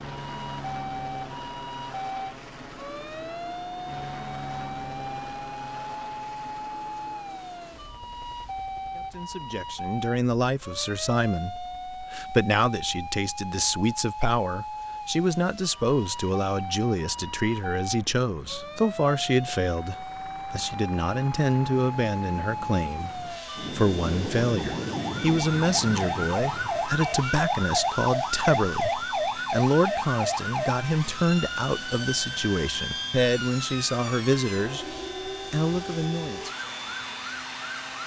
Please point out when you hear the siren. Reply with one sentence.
You can hear the siren from 0.1 to 38.0 s.